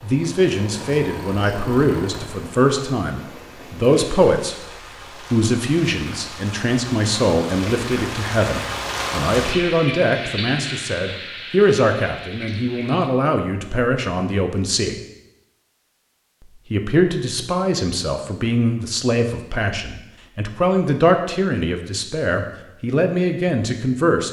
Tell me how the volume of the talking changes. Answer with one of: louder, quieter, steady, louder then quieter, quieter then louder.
steady.